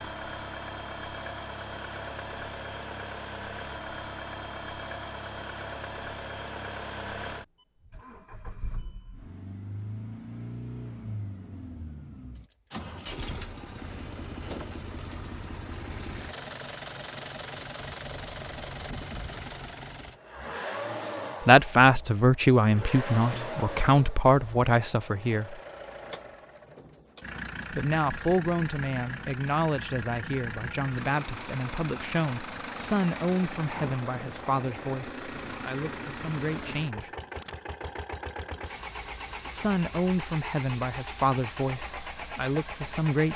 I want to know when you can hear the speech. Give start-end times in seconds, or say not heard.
21.4-25.6, 27.7-37.1, 39.5-43.3.